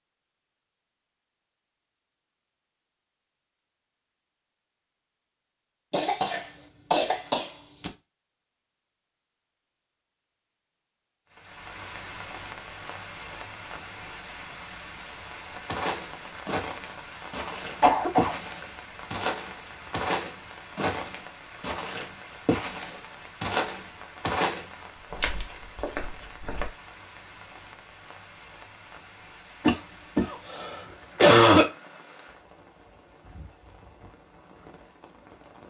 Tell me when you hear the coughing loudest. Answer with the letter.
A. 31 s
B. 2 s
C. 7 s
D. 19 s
A.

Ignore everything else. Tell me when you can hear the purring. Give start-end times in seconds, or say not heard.
not heard.